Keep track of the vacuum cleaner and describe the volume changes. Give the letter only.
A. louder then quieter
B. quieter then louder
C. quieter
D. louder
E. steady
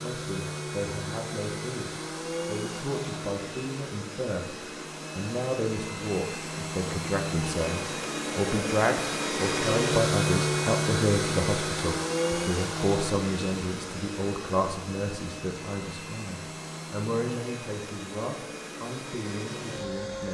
A.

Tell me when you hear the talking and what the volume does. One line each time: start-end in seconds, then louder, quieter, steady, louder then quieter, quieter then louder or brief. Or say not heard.
0.0-20.2 louder then quieter.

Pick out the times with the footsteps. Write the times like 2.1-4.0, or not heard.
not heard.